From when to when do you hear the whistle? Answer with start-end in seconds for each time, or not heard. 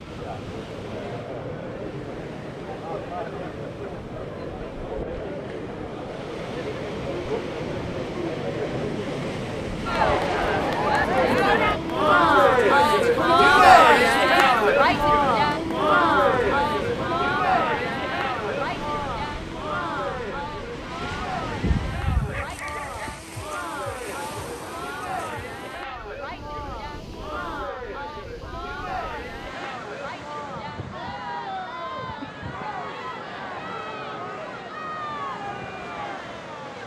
not heard.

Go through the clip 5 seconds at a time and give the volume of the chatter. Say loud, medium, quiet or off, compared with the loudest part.
quiet, quiet, loud, medium, quiet, quiet, quiet, quiet.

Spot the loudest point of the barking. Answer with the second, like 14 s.
22 s.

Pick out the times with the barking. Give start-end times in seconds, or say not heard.
21.6-23.1.